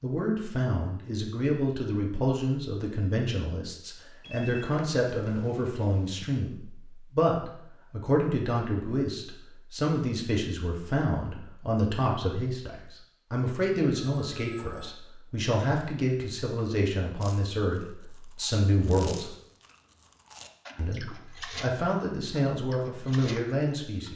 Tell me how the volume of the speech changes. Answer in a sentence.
The loudness of the speech stays about the same.